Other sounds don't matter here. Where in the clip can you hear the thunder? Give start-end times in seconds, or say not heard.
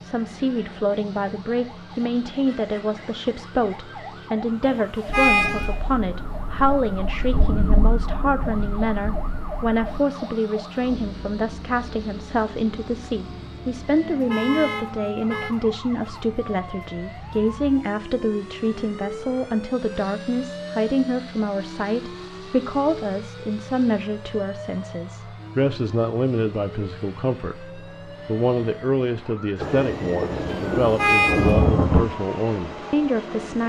5.0-10.0, 29.6-32.0.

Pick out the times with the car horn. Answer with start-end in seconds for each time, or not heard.
4.6-5.8, 14.0-15.6, 30.5-31.6.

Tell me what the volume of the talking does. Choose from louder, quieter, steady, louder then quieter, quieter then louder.
steady.